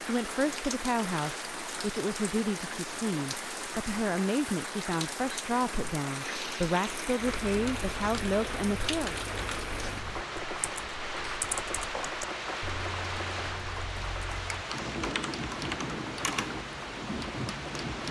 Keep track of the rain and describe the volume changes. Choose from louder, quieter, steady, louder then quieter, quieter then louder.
steady.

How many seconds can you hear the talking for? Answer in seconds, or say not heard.
9 s.